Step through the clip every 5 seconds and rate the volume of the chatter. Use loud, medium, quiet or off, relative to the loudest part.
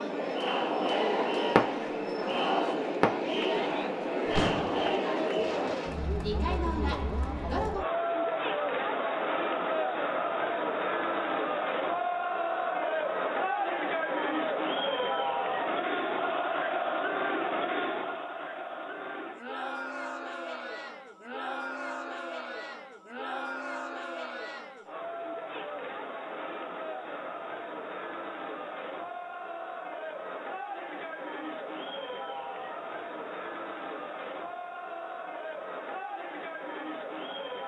loud, loud, loud, loud, medium, medium, medium, medium.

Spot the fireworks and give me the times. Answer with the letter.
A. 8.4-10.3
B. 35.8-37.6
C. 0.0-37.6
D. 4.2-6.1
D.